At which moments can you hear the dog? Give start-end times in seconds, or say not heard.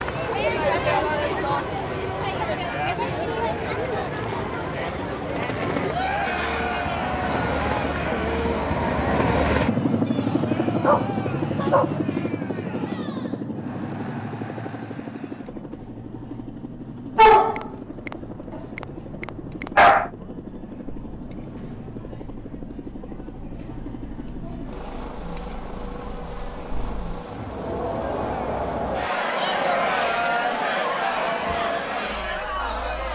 10.8-12.0, 17.1-20.1.